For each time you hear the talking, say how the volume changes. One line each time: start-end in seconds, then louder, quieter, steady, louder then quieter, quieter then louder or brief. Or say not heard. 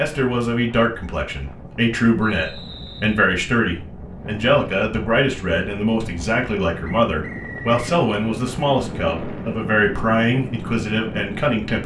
0.0-11.8 steady.